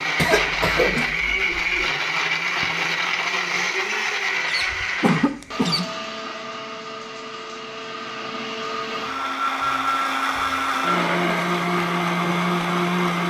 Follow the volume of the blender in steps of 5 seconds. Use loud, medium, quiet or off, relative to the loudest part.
loud, medium, loud.